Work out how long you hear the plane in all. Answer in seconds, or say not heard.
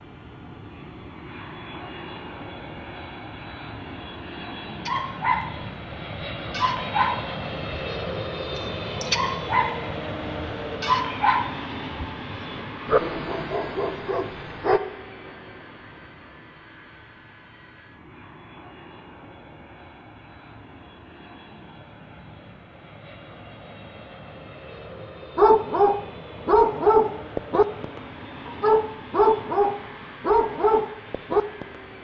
32 s.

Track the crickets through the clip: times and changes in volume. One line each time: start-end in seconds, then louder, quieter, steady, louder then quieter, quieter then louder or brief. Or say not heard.
not heard.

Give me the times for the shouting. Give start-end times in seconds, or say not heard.
not heard.